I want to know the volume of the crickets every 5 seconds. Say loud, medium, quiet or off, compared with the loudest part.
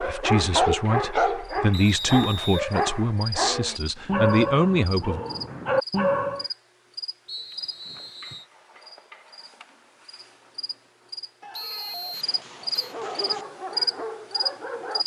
medium, medium, loud.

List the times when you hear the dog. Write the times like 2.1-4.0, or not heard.
0.0-6.5, 12.8-15.0.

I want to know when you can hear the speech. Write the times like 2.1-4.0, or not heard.
0.0-5.2.